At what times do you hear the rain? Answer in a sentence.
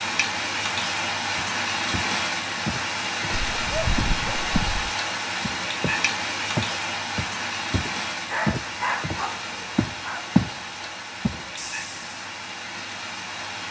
The rain can be heard from 0.0 to 13.6 s.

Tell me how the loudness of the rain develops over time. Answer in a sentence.
The volume of the rain goes down.